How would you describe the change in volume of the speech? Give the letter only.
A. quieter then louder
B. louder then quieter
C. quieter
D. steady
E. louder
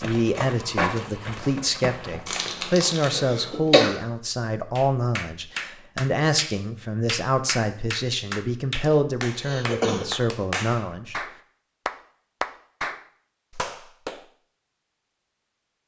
D.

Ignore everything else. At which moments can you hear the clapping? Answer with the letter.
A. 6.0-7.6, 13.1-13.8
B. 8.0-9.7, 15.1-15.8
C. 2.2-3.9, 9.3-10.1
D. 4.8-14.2
D.